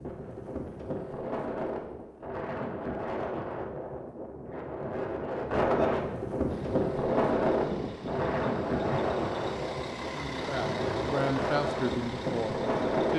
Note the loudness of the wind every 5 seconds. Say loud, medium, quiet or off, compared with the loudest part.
medium, loud, loud.